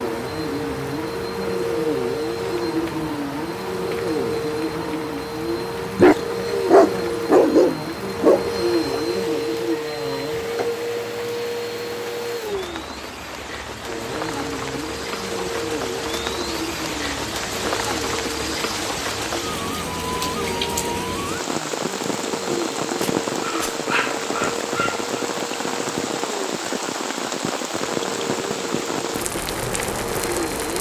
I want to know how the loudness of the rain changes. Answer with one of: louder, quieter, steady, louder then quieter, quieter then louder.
louder.